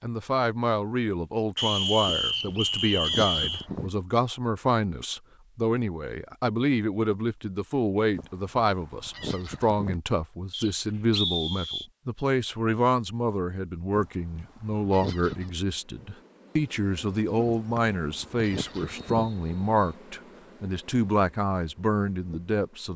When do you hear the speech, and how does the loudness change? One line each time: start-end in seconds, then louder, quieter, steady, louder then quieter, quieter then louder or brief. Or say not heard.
0.0-22.9 steady.